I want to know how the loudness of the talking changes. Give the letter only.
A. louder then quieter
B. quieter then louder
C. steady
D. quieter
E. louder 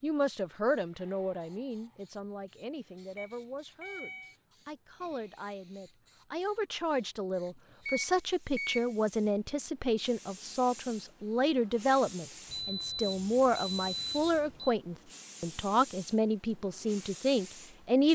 E.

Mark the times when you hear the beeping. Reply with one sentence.
The beeping can be heard from 3.1 to 4.3 s, from 7.8 to 8.9 s and from 12.5 to 14.8 s.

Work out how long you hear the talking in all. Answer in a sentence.
The talking can be heard for 18 seconds in total.